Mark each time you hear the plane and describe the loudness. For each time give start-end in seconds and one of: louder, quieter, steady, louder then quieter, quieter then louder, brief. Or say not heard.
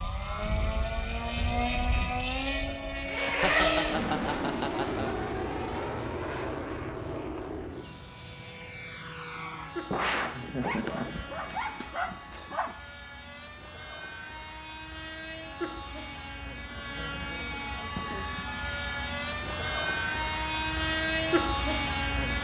0.0-22.3 quieter then louder.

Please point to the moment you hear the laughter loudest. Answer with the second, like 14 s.
10 s.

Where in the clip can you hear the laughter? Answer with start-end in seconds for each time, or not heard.
2.6-5.2, 9.9-11.6, 17.4-18.4.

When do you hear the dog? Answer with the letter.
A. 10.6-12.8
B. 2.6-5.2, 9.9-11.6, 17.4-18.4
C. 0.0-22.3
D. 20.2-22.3
A.